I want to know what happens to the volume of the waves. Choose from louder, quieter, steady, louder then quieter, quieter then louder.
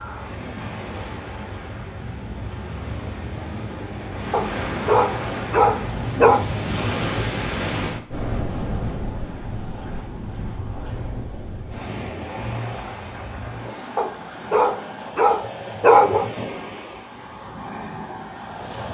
louder then quieter.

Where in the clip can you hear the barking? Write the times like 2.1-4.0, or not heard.
4.3-6.5, 13.9-16.3.